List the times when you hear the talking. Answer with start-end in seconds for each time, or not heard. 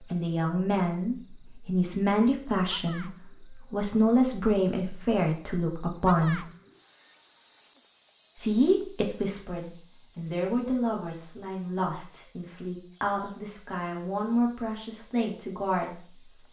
0.0-6.5, 8.4-16.4.